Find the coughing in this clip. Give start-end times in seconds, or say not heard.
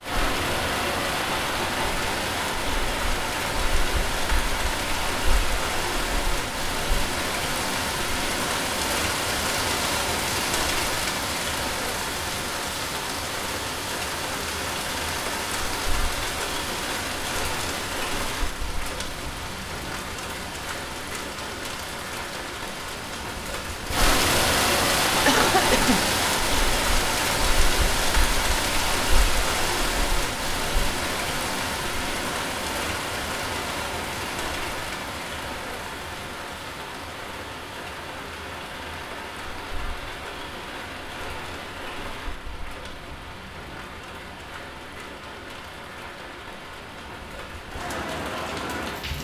25.2-26.0.